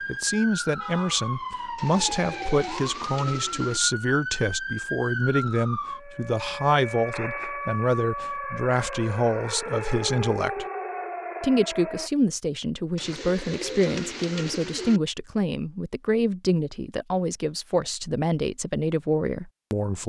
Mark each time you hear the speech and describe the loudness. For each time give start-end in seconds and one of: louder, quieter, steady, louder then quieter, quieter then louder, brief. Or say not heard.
0.1-10.7 steady
11.4-20.0 steady.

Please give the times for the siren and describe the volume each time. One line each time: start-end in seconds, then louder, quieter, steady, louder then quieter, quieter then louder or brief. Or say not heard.
0.0-12.1 steady.